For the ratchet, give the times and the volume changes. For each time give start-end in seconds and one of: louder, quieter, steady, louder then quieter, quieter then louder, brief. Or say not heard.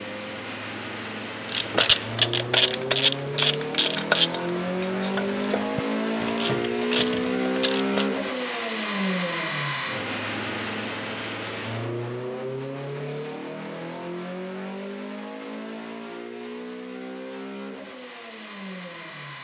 1.4-8.1 quieter.